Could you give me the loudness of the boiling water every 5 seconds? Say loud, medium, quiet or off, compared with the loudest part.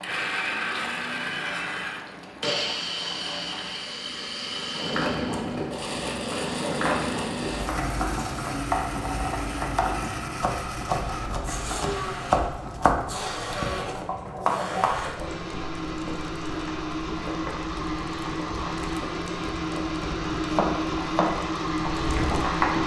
medium, loud, medium, medium, loud.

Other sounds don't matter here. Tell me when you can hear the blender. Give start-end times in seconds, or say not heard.
0.0-22.8.